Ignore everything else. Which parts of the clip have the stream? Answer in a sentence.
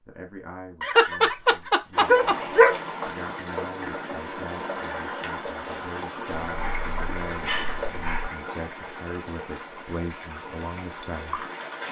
The stream can be heard from 1.9 to 11.8 s.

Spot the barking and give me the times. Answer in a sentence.
You can hear the barking from 0.8 to 2.8 s and from 6.4 to 8.3 s.